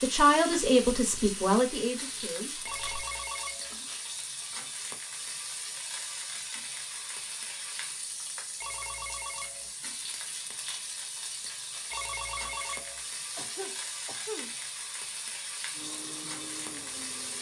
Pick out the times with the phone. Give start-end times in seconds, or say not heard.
2.6-3.8, 8.6-9.7, 11.9-13.0.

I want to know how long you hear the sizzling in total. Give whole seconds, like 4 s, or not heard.
17 s.